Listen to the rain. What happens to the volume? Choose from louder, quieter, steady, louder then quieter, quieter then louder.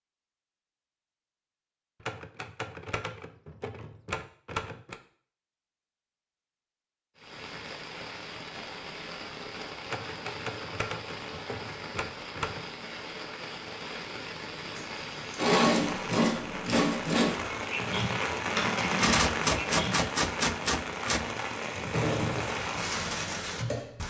louder.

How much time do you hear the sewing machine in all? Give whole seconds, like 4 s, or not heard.
7 s.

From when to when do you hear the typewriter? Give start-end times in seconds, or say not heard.
2.0-5.0, 9.8-12.7, 19.0-21.2.